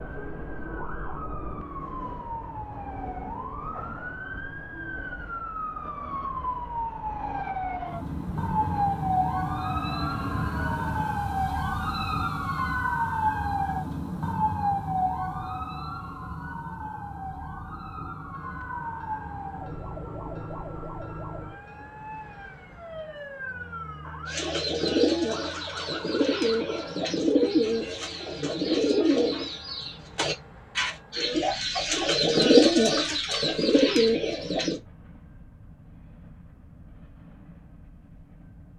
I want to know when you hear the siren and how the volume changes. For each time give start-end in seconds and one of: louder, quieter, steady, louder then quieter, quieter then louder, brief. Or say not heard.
0.0-27.1 louder then quieter.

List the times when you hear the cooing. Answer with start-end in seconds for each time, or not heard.
24.2-34.8.